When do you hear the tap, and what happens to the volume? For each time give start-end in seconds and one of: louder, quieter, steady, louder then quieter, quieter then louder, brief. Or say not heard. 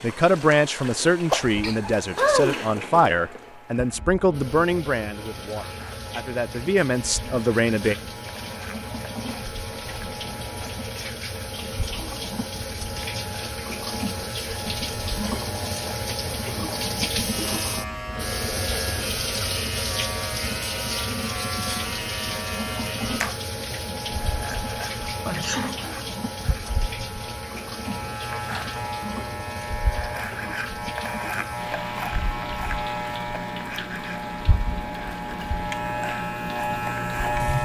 0.0-37.6 louder then quieter.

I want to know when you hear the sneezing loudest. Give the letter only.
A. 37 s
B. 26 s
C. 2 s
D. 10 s
C.